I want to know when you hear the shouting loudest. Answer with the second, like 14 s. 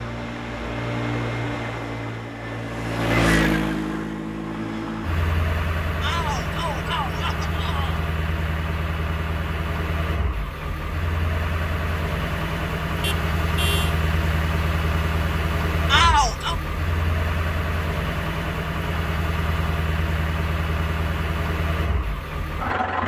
16 s.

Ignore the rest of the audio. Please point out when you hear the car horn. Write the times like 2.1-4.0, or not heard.
13.0-13.9.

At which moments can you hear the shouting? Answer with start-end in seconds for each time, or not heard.
6.0-8.0, 15.8-16.6.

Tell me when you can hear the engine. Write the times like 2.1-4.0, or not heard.
0.0-23.0.